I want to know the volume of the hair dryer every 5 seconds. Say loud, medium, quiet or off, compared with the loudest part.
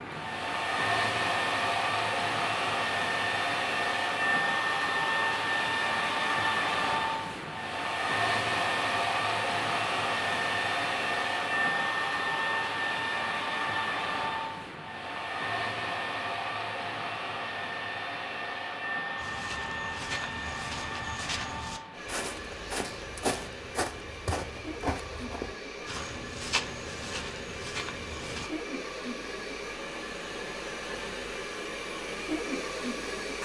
loud, loud, loud, medium, medium, medium, medium.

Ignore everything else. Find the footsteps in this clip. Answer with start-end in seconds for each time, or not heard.
19.1-28.5.